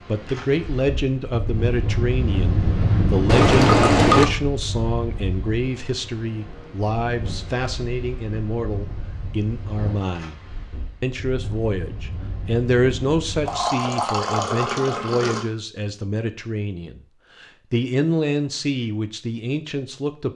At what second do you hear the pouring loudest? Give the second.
4 s.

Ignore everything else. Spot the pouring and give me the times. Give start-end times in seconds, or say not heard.
3.2-4.3, 13.4-15.4.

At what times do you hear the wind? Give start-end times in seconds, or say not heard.
0.0-13.7.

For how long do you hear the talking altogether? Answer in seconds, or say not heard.
20 s.